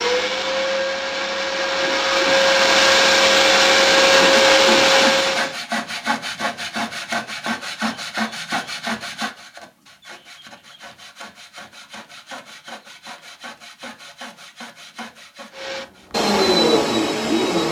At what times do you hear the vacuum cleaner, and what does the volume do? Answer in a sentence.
The vacuum cleaner can be heard from 0.0 to 5.5 s, getting louder; and briefly from 15.6 to 17.6 s.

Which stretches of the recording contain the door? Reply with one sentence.
The door can't be heard in this clip.